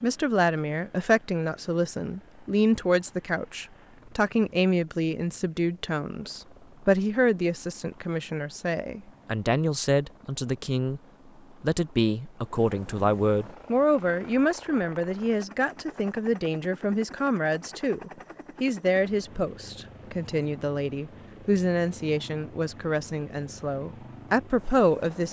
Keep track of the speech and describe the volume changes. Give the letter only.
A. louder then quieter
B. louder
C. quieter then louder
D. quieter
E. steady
E.